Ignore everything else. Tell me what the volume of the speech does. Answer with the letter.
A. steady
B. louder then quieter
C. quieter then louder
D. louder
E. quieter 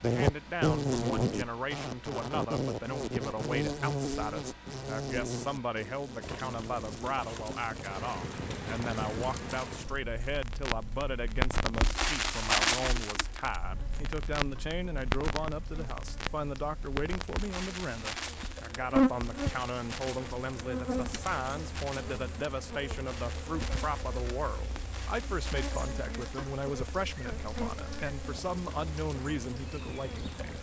A.